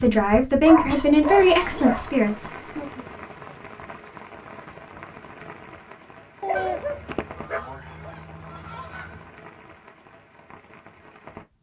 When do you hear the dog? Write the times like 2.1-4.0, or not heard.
0.7-2.1, 6.4-8.1.